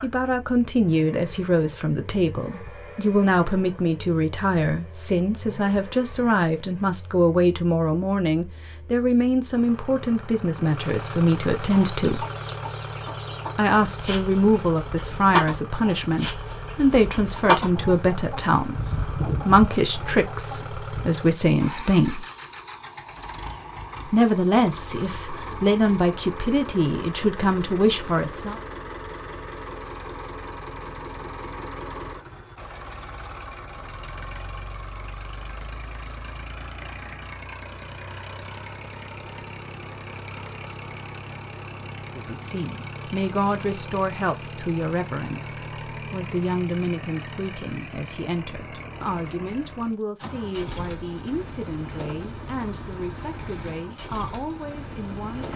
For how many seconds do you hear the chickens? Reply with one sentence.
You can hear the chickens for 9 seconds altogether.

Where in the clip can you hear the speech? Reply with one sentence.
The speech can be heard from 0.0 to 12.2 s, from 13.6 to 22.2 s, from 24.1 to 28.6 s and from 42.1 to 55.5 s.